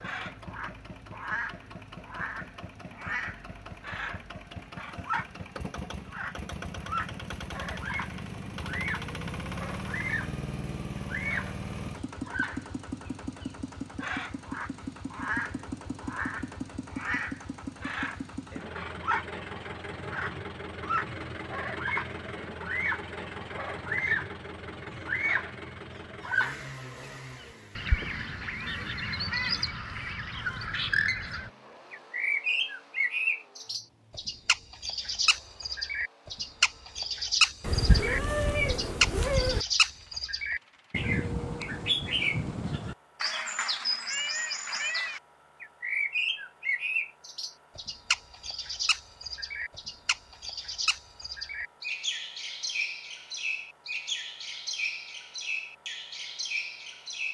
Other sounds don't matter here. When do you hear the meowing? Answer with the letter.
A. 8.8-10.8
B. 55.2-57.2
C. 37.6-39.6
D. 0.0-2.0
C.